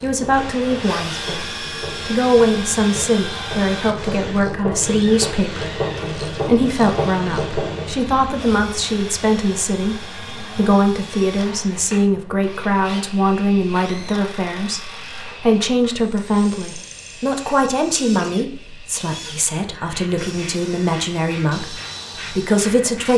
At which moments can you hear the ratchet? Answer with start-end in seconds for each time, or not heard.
0.0-8.0.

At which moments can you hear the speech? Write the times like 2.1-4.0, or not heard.
0.0-23.1.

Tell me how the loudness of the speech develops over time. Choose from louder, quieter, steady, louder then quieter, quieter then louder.
steady.